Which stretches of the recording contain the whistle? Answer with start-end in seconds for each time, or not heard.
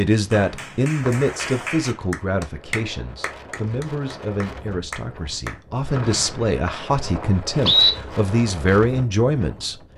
0.3-1.6, 6.0-7.9.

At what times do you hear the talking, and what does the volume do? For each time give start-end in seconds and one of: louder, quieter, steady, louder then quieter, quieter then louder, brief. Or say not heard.
0.0-9.8 quieter then louder.